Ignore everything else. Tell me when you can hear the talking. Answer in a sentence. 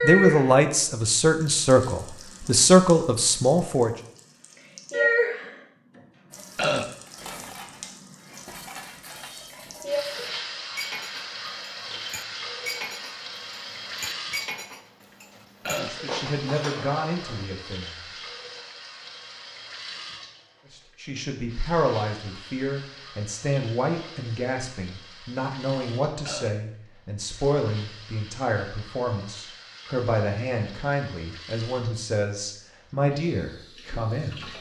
You can hear the talking from 0.0 to 3.9 s, from 15.8 to 17.9 s and from 20.7 to 34.5 s.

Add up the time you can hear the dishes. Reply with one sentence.
You can hear the dishes for 11 seconds altogether.